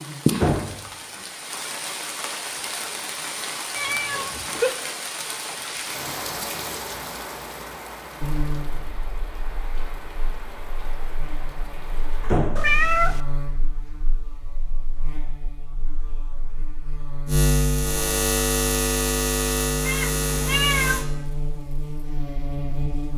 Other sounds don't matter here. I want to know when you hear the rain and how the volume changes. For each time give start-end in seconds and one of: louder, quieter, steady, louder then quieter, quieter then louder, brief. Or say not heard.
0.0-12.4 quieter.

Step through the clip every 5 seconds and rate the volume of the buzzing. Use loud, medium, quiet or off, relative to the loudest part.
off, medium, quiet, loud, loud.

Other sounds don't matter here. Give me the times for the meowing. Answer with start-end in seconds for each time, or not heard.
3.8-4.8, 12.6-13.2, 19.9-21.0.